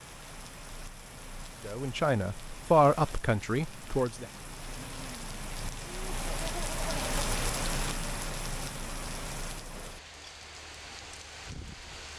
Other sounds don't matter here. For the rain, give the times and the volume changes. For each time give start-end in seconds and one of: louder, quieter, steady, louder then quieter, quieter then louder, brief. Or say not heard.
0.0-12.1 louder then quieter.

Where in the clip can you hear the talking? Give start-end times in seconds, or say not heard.
1.6-4.2.